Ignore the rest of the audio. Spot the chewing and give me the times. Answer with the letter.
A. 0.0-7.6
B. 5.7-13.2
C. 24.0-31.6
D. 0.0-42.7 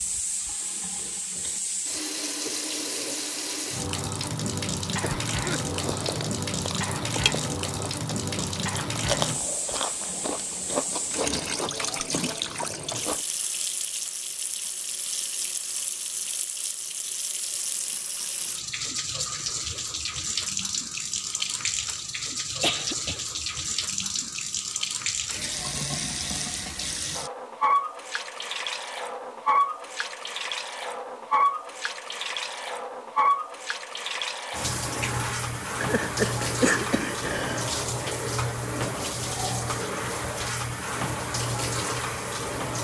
B.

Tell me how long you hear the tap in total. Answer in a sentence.
You can hear the tap for 43 seconds altogether.